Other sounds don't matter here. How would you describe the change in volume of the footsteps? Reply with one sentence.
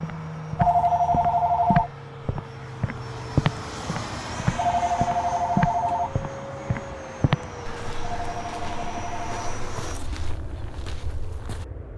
The volume of the footsteps goes down.